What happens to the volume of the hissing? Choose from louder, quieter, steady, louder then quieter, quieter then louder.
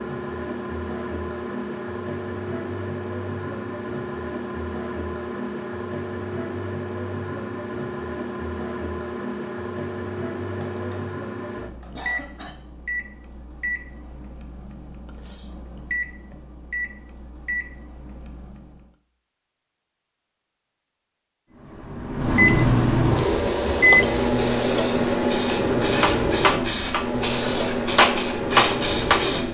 louder.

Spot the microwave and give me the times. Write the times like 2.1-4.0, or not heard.
0.0-18.9, 21.6-29.5.